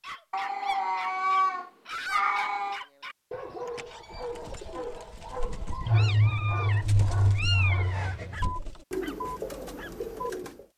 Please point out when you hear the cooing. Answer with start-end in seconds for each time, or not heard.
4.1-10.7.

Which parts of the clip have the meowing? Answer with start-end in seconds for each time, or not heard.
0.3-2.8, 5.8-8.6.